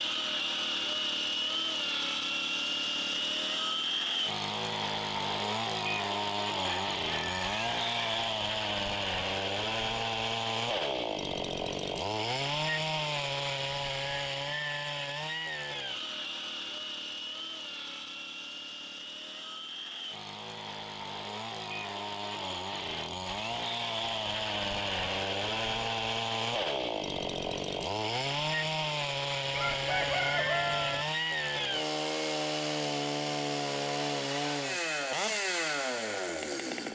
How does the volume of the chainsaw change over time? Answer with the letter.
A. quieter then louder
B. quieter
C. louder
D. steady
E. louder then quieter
A.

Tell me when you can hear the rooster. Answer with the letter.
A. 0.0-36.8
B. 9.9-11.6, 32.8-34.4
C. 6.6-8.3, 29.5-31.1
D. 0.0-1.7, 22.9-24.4
C.